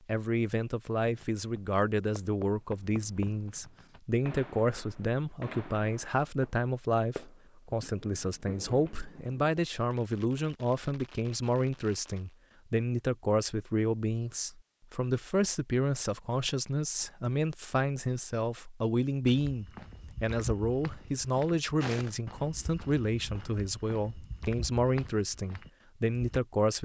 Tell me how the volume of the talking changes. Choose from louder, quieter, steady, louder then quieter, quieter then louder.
steady.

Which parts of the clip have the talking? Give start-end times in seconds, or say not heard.
0.1-26.7.